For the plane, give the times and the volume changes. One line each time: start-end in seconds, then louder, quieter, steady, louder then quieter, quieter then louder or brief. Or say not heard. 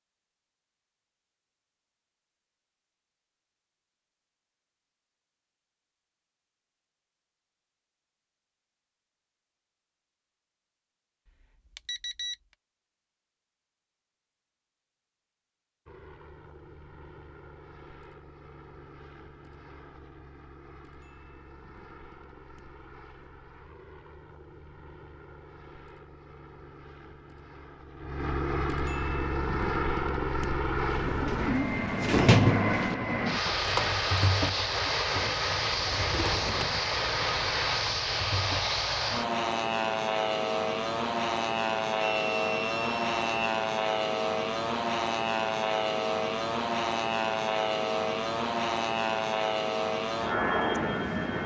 15.8-51.4 louder.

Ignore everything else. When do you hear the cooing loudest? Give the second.
32 s.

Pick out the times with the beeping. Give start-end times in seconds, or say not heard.
11.8-12.3, 42.0-43.2.